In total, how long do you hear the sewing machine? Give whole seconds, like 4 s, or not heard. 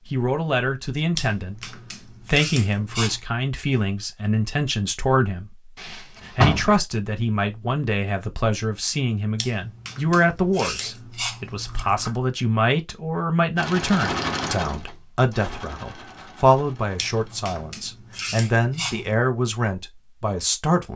4 s.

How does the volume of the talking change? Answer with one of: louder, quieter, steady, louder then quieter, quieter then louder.
steady.